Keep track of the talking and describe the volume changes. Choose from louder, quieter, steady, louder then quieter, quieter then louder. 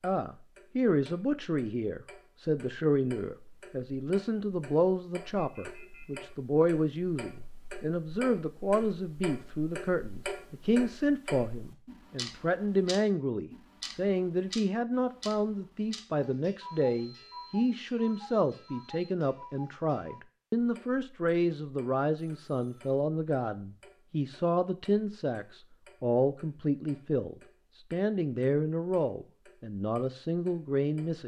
steady.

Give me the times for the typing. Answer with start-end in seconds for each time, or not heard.
not heard.